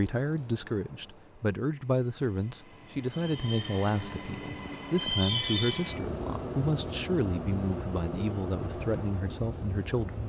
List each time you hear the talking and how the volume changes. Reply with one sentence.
The talking can be heard from 0.0 to 10.2 s, at a steady volume.